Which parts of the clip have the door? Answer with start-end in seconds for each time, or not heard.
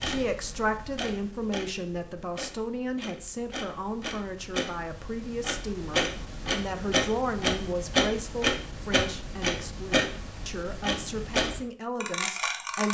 not heard.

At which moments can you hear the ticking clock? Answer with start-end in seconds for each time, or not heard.
0.0-12.8.